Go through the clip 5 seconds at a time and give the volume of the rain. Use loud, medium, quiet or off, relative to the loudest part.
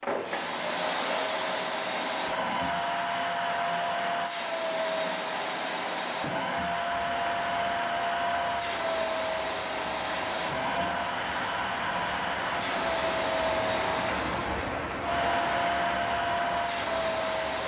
off, medium, loud, loud.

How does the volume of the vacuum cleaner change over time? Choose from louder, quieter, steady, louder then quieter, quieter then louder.
steady.